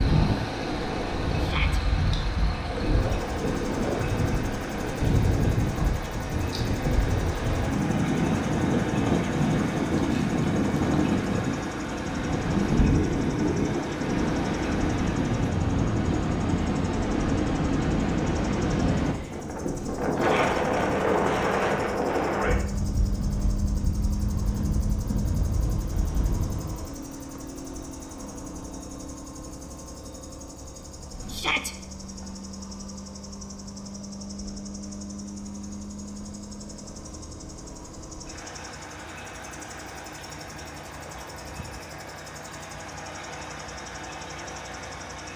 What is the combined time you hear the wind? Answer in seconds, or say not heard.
27 s.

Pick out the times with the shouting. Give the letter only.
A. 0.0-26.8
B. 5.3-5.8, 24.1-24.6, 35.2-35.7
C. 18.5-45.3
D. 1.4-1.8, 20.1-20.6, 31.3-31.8
D.